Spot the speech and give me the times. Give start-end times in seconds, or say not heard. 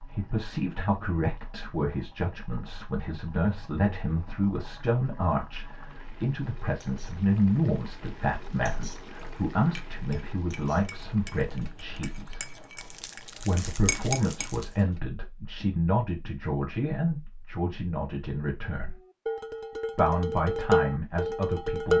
0.0-12.4, 13.3-18.9, 19.9-21.9.